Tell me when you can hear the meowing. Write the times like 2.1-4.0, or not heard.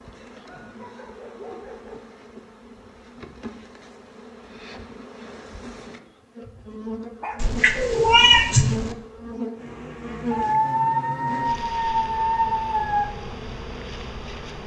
7.4-8.9.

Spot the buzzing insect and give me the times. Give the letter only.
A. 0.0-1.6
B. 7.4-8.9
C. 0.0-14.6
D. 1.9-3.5
C.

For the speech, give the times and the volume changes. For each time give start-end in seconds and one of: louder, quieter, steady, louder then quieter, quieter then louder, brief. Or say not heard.
not heard.